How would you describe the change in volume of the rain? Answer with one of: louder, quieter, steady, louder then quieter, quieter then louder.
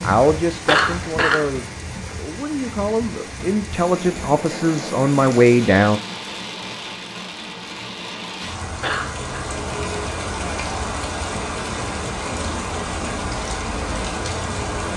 louder.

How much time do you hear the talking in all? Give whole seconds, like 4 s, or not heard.
6 s.